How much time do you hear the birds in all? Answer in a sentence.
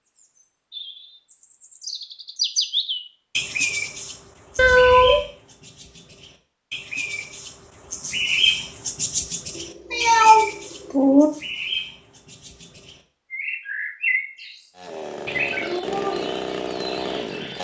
You can hear the birds for 17 seconds altogether.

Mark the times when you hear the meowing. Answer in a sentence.
You can hear the meowing from 4.5 to 5.2 s and from 9.6 to 11.3 s.